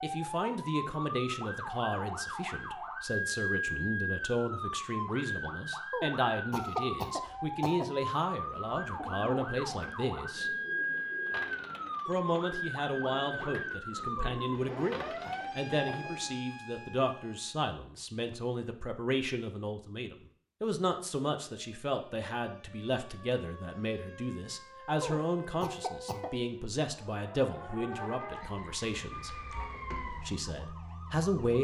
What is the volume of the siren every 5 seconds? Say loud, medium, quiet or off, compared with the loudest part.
loud, loud, loud, medium, quiet, medium, medium.